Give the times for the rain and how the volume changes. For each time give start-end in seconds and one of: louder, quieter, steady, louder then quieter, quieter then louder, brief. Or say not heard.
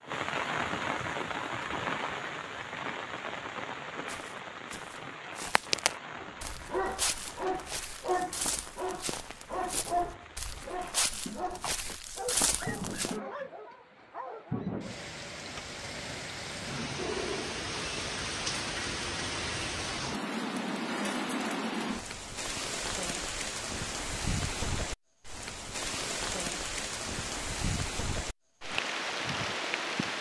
0.0-30.1 quieter then louder.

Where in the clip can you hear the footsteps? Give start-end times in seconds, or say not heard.
4.0-13.2.